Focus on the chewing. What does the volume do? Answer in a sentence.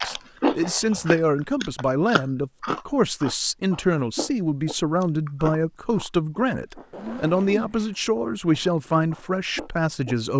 The volume of the chewing goes down.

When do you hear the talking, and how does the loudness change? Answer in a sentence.
The talking can be heard from 0.0 to 10.3 s, at a steady volume.